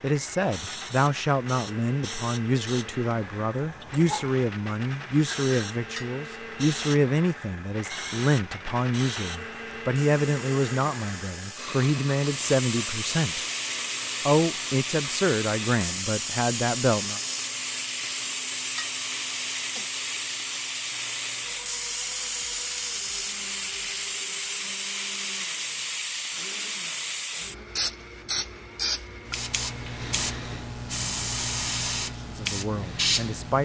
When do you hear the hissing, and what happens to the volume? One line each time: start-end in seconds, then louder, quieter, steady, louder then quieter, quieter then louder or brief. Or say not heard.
0.1-33.6 louder.